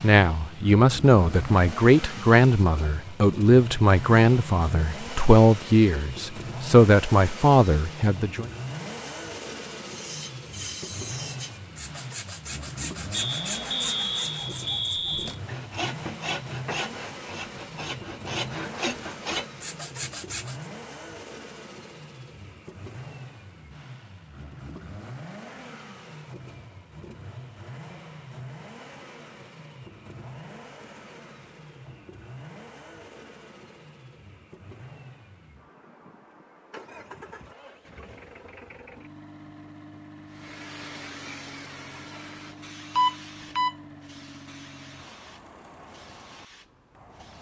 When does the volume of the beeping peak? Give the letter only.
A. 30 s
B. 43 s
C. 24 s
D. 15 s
B.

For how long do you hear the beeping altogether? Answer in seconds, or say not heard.
3 s.